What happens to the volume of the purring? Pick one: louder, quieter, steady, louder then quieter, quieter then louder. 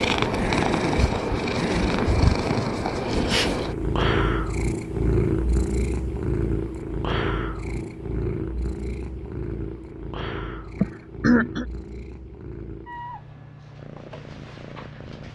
quieter.